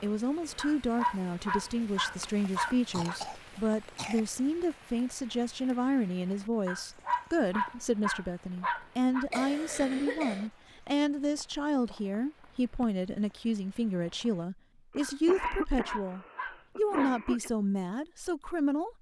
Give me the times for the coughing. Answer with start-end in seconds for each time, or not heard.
2.2-4.2, 9.3-10.5, 14.9-17.5.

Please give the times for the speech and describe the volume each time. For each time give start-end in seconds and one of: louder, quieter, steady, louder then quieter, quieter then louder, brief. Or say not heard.
0.0-18.9 steady.